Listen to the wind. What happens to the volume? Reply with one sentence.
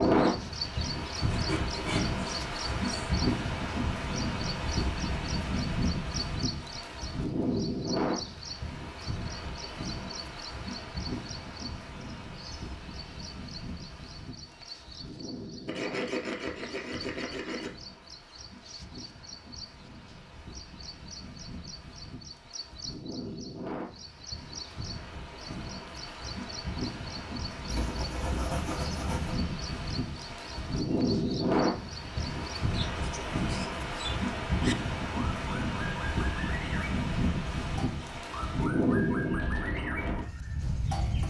The loudness of the wind goes down, then up.